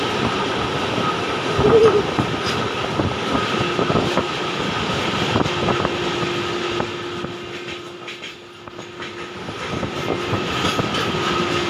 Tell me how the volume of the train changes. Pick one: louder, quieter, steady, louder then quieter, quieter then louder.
quieter then louder.